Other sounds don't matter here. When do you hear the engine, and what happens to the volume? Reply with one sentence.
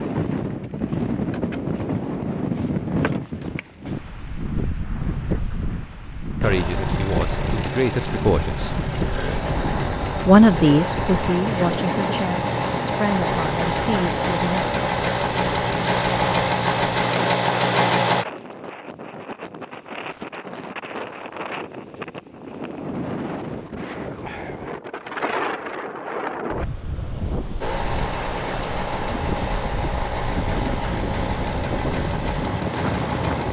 The engine can be heard from 6.4 to 18.2 s, getting louder; and from 27.6 to 33.4 s, at a steady volume.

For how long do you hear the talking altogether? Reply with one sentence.
You can hear the talking for 7 seconds altogether.